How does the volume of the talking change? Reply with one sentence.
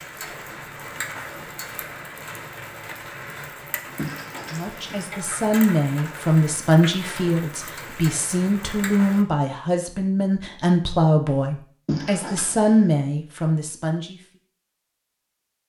The loudness of the talking stays about the same.